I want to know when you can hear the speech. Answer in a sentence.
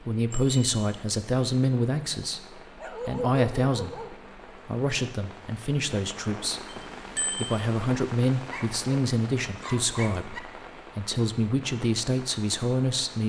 You can hear the speech from 0.0 to 13.2 s.